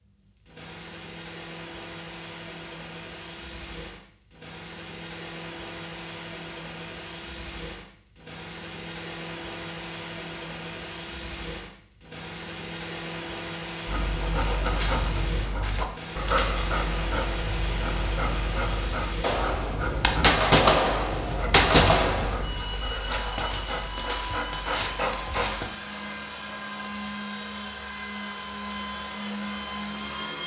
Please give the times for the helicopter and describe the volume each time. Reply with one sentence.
You can hear the helicopter from 0.0 to 30.4 s, getting louder.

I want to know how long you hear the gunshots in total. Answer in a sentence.
You can hear the gunshots for 3 seconds altogether.